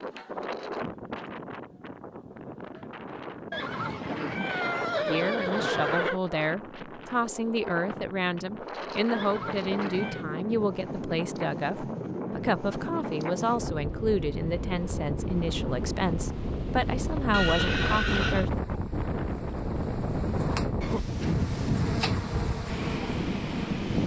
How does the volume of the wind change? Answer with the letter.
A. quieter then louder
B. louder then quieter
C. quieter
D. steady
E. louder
E.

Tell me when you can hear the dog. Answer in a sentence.
You can't hear the dog here.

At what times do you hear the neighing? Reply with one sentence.
You can hear the neighing from 3.5 to 6.2 s, from 9.1 to 10.2 s and from 17.3 to 18.4 s.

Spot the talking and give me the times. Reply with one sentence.
The talking can be heard from 5.0 to 18.5 s.